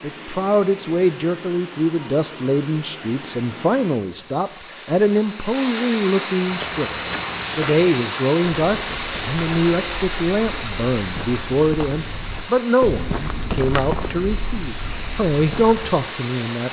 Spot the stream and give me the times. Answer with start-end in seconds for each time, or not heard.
0.0-16.6.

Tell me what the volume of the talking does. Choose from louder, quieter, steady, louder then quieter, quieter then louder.
steady.